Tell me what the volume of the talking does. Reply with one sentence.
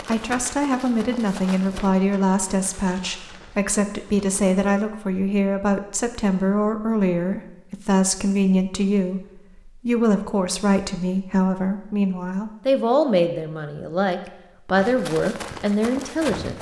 The loudness of the talking stays about the same.